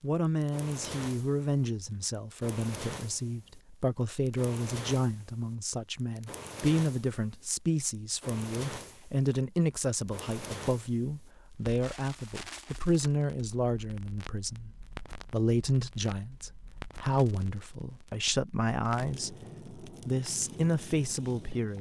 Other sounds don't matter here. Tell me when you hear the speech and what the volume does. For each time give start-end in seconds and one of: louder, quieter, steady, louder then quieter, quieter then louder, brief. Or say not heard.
0.0-21.7 steady.